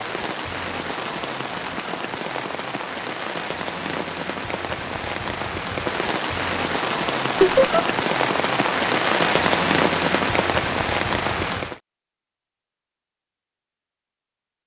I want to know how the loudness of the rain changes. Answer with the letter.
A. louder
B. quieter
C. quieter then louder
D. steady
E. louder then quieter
A.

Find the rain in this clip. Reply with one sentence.
You can hear the rain from 0.0 to 11.8 s.